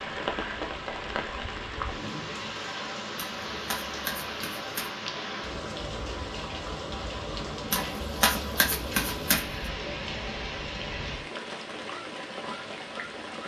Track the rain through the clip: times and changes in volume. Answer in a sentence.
You can hear the rain from 0.0 to 13.4 s, at a steady volume.